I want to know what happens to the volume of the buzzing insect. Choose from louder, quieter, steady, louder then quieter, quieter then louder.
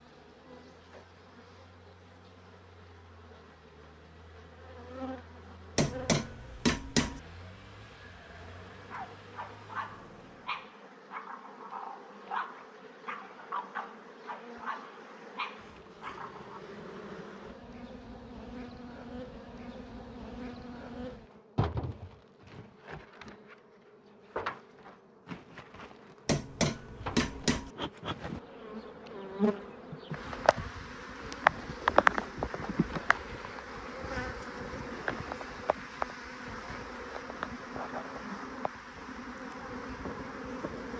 louder then quieter.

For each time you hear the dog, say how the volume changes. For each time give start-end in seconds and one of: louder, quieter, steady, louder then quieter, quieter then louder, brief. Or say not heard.
8.7-16.6 steady.